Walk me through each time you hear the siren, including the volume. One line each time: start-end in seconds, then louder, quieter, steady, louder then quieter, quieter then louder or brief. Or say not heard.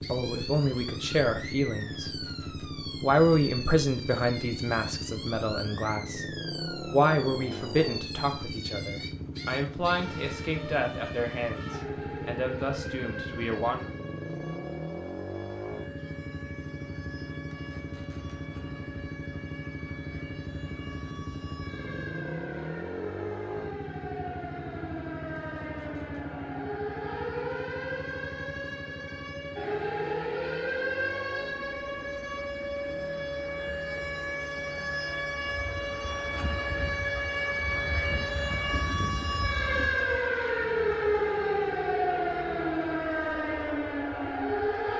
0.0-44.9 louder.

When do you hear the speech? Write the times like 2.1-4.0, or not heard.
0.0-2.2, 3.0-13.9.